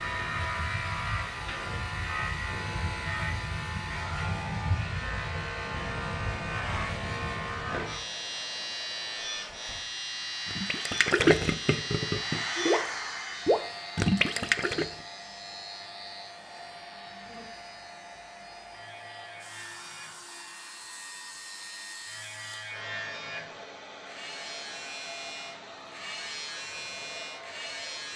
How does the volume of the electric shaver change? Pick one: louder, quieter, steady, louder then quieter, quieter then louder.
quieter then louder.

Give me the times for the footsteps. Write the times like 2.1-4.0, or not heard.
not heard.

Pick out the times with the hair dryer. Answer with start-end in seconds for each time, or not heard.
0.0-28.1.